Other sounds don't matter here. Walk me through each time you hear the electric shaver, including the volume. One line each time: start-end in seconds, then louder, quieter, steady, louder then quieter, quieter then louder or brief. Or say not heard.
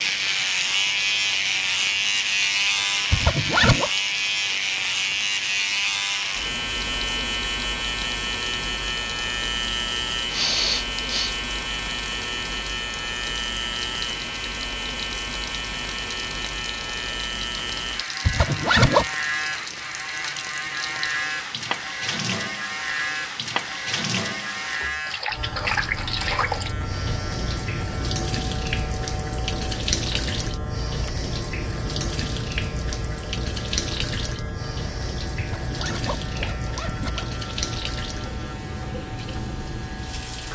0.0-40.5 quieter.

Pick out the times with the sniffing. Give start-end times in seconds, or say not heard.
10.2-11.4.